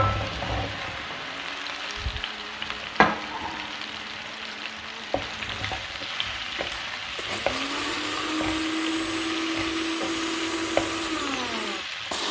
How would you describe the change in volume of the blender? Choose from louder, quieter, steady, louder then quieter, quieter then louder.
louder.